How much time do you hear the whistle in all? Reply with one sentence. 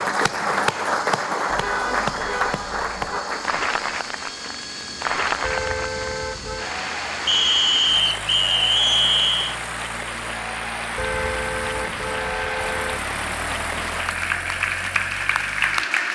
The whistle can be heard for 2 seconds in total.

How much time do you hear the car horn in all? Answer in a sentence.
You can hear the car horn for 5 seconds altogether.